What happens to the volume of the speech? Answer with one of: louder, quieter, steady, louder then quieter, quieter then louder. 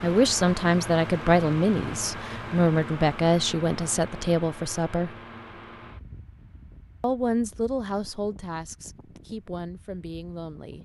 quieter.